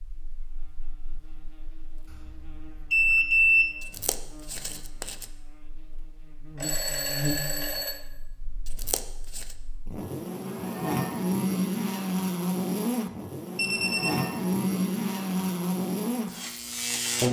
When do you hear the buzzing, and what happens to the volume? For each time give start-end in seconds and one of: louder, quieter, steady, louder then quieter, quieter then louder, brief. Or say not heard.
0.0-17.2 louder.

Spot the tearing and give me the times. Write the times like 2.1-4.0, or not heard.
3.8-5.2, 8.7-9.6.